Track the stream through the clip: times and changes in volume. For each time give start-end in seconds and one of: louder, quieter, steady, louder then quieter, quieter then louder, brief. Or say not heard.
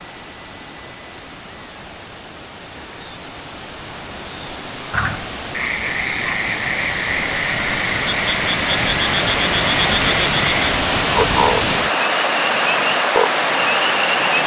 0.0-14.4 louder.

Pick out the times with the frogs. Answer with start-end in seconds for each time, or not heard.
4.9-14.4.